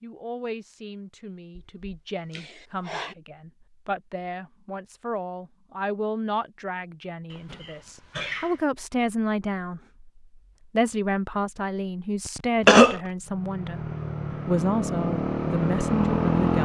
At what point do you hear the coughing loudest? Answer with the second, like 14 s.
13 s.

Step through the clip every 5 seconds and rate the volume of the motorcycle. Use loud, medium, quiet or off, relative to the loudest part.
off, off, medium, loud.